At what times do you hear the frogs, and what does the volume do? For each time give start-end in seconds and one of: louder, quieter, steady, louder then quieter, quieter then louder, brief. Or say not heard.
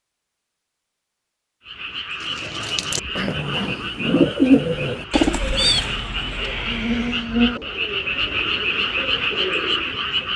1.6-10.3 louder.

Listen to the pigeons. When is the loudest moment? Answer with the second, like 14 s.
4 s.